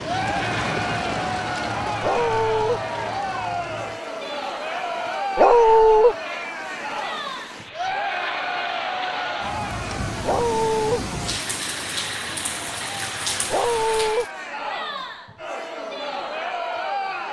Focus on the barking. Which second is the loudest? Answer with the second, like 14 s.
6 s.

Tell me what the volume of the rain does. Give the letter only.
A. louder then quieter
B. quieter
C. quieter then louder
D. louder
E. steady
C.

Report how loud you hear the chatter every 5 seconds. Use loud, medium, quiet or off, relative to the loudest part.
loud, loud, medium, loud.